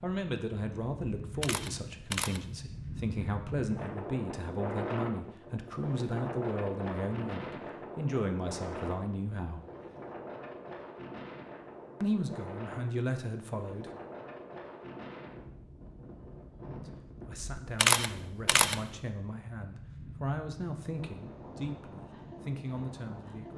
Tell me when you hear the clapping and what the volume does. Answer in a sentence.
The clapping can't be heard in this clip.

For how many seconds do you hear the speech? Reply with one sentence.
You can hear the speech for 18 seconds altogether.